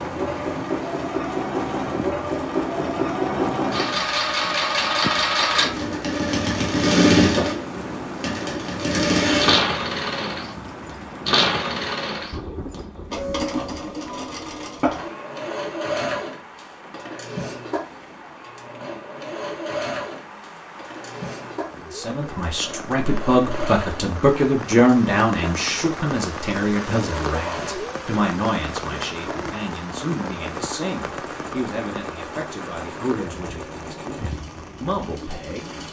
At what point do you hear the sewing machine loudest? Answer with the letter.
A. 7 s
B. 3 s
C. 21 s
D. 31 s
A.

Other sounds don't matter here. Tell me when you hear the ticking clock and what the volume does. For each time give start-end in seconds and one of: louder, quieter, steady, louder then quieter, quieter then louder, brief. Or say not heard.
not heard.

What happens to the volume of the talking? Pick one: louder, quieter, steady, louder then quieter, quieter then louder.
quieter.